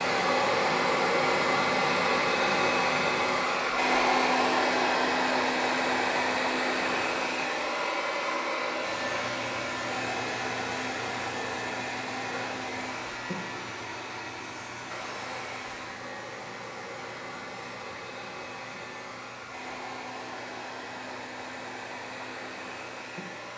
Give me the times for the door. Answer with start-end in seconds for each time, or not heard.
not heard.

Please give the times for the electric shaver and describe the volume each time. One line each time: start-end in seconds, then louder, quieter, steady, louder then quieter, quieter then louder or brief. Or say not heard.
8.8-23.5 quieter.